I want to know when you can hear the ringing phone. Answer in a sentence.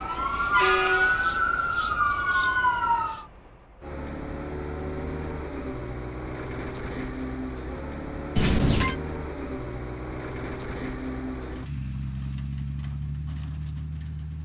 You can hear the ringing phone from 8.3 to 8.9 s.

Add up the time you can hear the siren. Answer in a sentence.
You can hear the siren for 3 seconds altogether.